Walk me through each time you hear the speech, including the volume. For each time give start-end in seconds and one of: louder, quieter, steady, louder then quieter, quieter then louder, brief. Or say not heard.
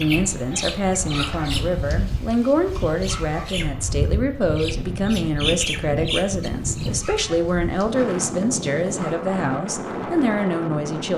0.0-11.1 steady.